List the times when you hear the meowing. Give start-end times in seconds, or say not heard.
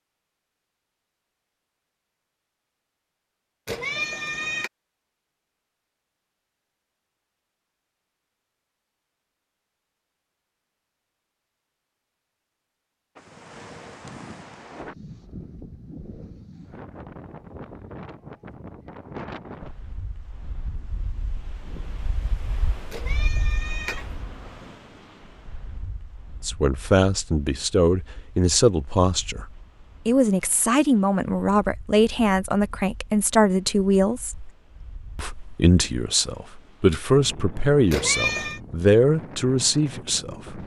3.6-4.7, 22.9-24.1, 37.9-38.6.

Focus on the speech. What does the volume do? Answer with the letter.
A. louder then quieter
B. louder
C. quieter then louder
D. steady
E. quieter
D.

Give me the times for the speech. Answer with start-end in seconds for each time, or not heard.
26.4-29.4, 30.1-34.5, 35.1-40.6.